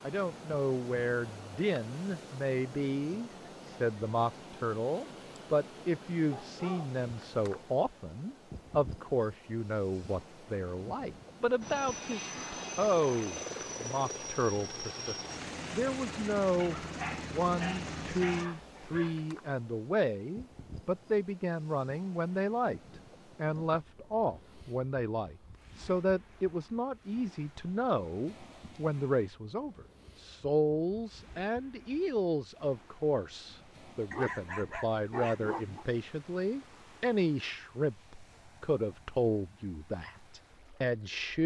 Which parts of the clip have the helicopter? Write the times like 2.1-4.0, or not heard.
11.6-18.5.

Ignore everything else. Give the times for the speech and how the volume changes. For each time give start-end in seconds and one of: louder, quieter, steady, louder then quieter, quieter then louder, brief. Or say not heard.
0.0-41.4 steady.